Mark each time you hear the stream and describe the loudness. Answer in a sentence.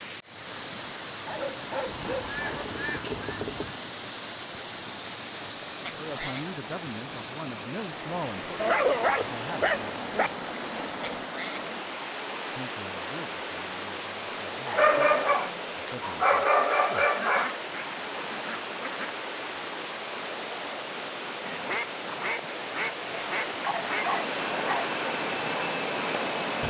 You can hear the stream from 0.0 to 26.6 s, at a steady volume.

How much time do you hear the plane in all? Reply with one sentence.
You can hear the plane for 3 seconds altogether.